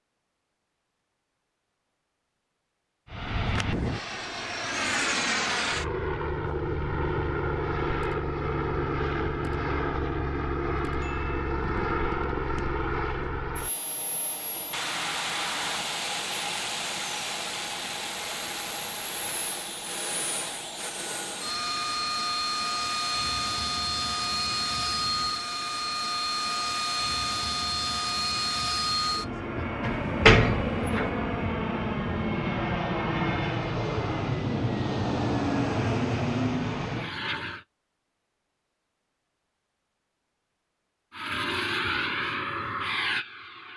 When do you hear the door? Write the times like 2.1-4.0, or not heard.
29.8-31.1.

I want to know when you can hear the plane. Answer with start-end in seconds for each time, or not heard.
3.0-37.6, 41.1-43.7.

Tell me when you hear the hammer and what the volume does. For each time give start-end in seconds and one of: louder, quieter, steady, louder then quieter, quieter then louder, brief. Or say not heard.
not heard.